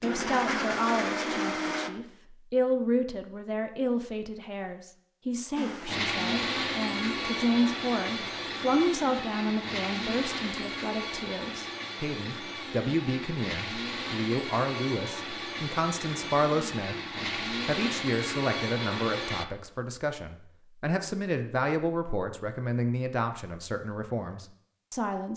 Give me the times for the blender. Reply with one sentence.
You can hear the blender from 0.0 to 1.9 s and from 5.5 to 19.4 s.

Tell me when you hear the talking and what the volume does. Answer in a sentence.
The talking can be heard from 0.0 to 25.3 s, at a steady volume.